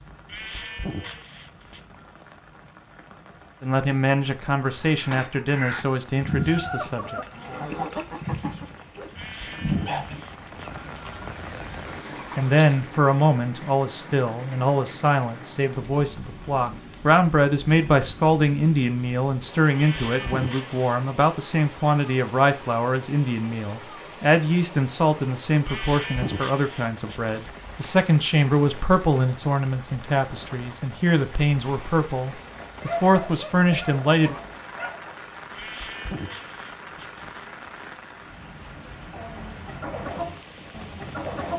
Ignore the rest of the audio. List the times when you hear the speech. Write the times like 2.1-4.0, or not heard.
3.6-7.2, 12.3-34.4.